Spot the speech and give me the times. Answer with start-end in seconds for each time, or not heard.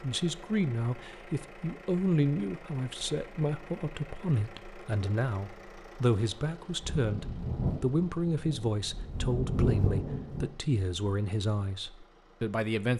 0.0-12.9.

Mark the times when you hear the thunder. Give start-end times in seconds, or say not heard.
6.8-10.5.